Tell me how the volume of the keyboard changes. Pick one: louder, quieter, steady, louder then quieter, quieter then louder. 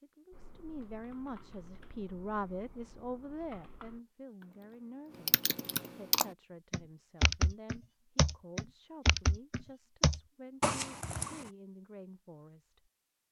louder.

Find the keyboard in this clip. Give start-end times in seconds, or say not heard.
0.3-11.5.